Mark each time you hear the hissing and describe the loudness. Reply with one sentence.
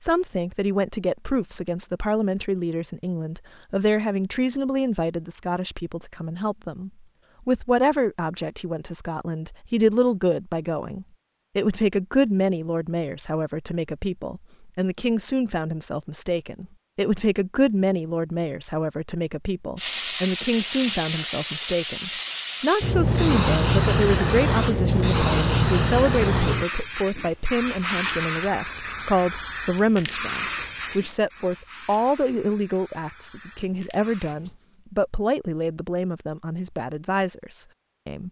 You can hear the hissing from 19.8 to 34.5 s, getting quieter.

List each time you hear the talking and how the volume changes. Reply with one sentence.
The talking can be heard from 0.0 to 38.2 s, at a steady volume.